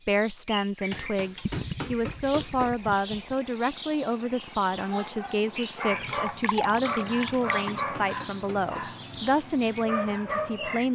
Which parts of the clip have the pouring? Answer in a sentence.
You can hear the pouring from 1.4 to 3.4 s and from 6.0 to 7.8 s.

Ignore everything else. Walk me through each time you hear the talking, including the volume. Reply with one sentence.
You can hear the talking from 0.1 to 10.9 s, at a steady volume.